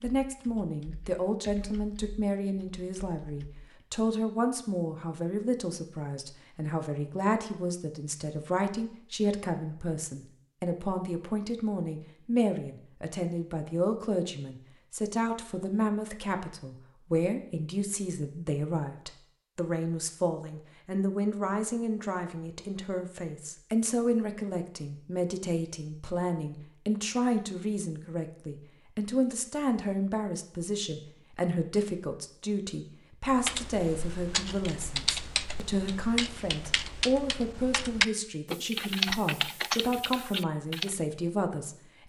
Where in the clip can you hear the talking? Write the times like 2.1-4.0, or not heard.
0.0-42.0.